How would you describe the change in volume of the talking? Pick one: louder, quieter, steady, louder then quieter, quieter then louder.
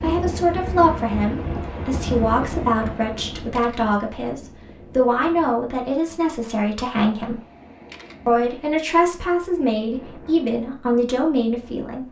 steady.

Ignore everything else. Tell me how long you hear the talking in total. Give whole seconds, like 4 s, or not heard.
11 s.